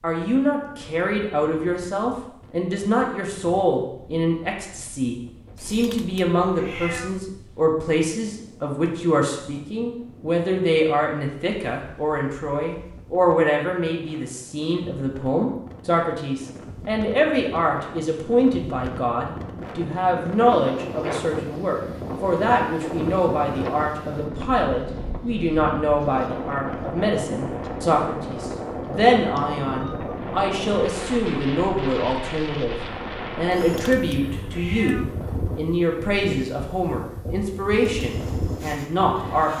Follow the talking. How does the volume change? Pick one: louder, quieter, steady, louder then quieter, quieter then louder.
steady.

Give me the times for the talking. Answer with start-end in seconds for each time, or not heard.
0.0-39.5.